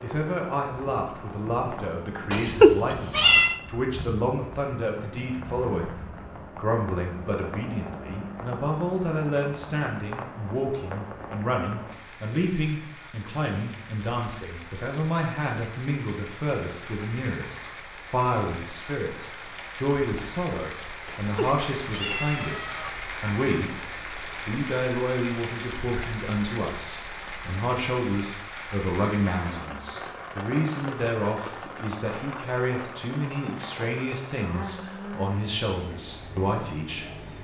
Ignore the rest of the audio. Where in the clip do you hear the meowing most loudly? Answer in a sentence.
The loudest moment of the meowing is at 3 seconds.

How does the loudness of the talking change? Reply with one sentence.
The loudness of the talking stays about the same.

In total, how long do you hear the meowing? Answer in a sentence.
The meowing can be heard for 3 seconds in total.